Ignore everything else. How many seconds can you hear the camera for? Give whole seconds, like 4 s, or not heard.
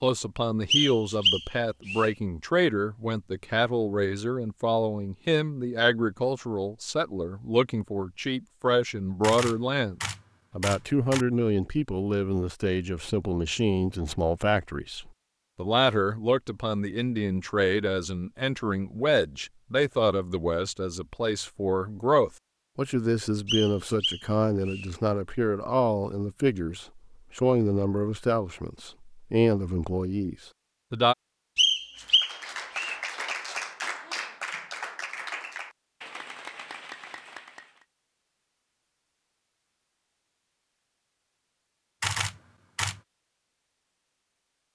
3 s.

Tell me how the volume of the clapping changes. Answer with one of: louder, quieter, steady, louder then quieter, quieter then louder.
quieter.